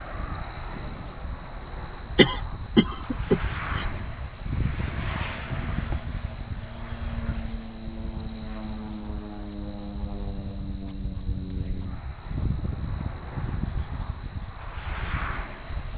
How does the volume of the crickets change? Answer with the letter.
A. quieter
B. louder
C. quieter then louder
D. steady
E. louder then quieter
D.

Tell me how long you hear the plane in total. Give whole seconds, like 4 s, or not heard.
16 s.